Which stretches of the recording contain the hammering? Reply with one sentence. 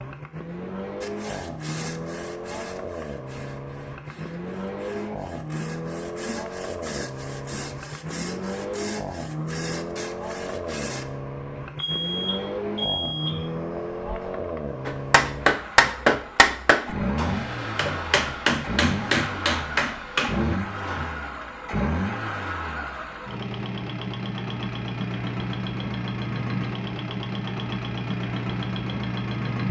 The hammering can be heard from 14.8 to 21.1 s.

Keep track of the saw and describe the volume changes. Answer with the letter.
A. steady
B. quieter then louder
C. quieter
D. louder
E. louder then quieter
B.